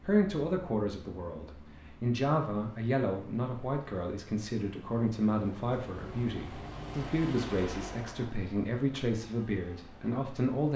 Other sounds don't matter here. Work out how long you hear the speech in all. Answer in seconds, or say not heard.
11 s.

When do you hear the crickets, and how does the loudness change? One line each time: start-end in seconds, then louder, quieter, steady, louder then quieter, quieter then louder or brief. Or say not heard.
not heard.